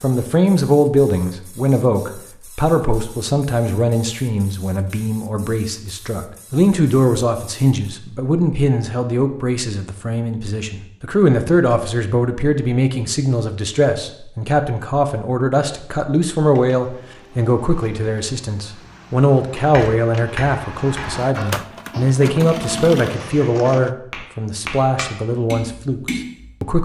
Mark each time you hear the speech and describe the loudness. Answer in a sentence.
The speech can be heard from 0.0 to 26.8 s, at a steady volume.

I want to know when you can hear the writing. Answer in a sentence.
You can't hear the writing here.